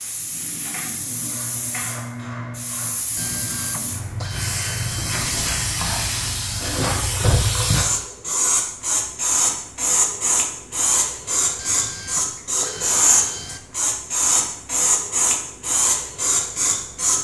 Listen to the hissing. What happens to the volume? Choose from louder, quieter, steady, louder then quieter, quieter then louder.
louder.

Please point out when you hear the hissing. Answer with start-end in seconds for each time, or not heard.
0.0-17.2.